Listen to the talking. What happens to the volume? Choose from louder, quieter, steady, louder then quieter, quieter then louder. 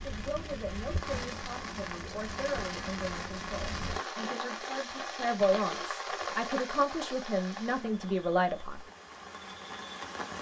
louder.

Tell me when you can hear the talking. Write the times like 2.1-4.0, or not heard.
0.0-8.8.